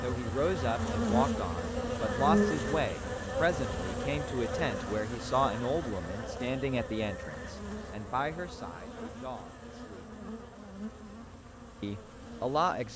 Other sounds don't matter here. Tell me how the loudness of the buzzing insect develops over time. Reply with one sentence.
The volume of the buzzing insect goes down.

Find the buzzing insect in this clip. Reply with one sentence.
You can hear the buzzing insect from 0.0 to 12.9 s.